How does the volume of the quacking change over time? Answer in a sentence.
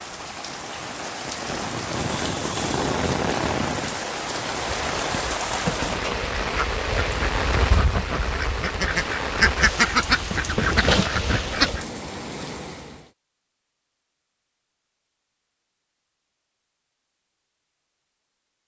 The loudness of the quacking goes up.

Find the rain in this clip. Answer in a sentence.
The rain can be heard from 0.0 to 13.1 s.